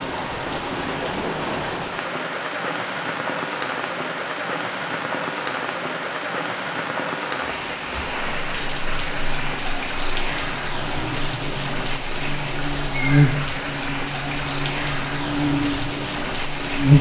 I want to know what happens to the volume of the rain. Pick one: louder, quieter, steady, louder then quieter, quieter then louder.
steady.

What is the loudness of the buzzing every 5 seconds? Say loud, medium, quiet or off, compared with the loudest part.
off, quiet, medium, loud.